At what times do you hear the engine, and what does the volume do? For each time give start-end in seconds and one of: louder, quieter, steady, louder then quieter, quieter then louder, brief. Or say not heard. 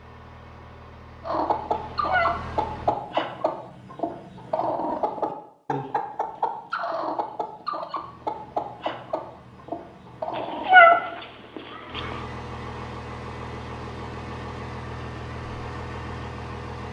0.0-3.0 brief
8.0-16.8 louder.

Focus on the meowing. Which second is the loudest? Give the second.
11 s.